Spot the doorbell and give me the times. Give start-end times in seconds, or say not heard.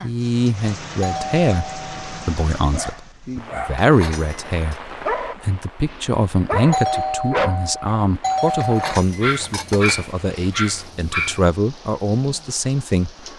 1.0-2.3, 6.7-8.9.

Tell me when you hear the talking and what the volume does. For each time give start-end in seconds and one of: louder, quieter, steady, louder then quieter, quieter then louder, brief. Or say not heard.
0.0-13.1 steady.